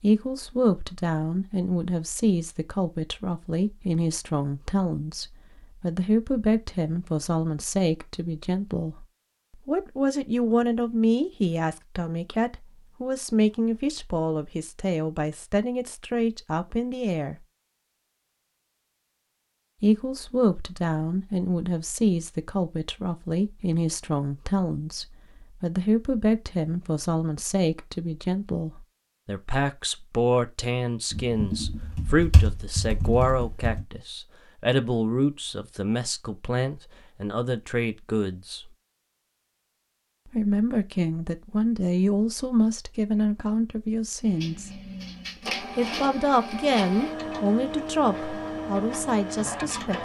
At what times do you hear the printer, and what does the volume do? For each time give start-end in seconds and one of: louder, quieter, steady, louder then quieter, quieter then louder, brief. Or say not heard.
44.2-50.0 steady.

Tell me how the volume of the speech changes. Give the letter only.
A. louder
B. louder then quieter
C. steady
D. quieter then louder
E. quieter
C.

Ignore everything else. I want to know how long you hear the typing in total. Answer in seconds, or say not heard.
3 s.